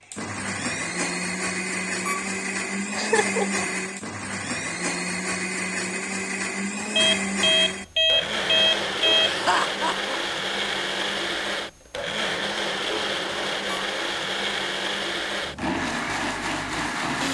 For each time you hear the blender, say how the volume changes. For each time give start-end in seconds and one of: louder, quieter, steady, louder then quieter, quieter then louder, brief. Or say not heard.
0.0-17.2 steady.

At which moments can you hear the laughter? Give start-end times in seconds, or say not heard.
2.9-3.6, 9.2-10.1.